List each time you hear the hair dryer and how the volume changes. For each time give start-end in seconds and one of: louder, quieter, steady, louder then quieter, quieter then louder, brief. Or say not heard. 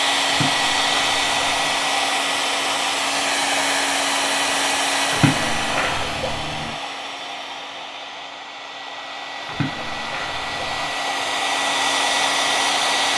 0.0-13.1 quieter then louder.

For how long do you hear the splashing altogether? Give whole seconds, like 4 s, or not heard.
5 s.